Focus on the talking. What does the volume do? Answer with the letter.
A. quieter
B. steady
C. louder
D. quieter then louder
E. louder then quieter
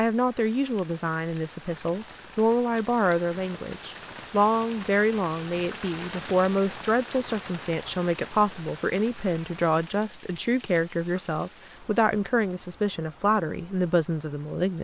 B.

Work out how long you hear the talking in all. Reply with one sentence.
You can hear the talking for 15 seconds altogether.